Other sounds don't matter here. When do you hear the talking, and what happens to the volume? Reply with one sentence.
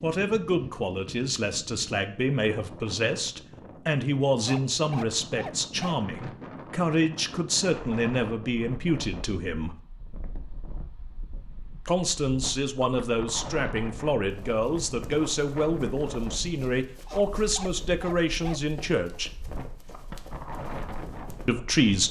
The talking can be heard from 0.0 to 9.8 s, at a steady volume; from 11.8 to 19.3 s, at a steady volume; and briefly from 21.4 to 22.0 s.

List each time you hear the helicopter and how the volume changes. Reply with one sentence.
The helicopter can't be heard in this clip.